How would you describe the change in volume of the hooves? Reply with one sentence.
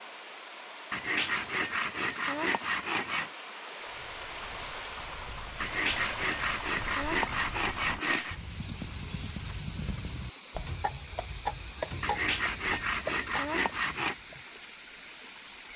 The loudness of the hooves goes up.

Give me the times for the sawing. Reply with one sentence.
You can hear the sawing from 0.9 to 3.4 s, from 5.6 to 8.3 s and from 12.0 to 14.2 s.